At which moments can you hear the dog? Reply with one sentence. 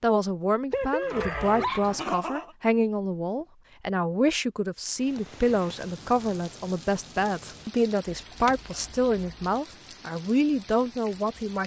The dog can be heard from 0.7 to 2.5 s.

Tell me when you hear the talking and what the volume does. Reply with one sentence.
The talking can be heard from 0.0 to 11.6 s, at a steady volume.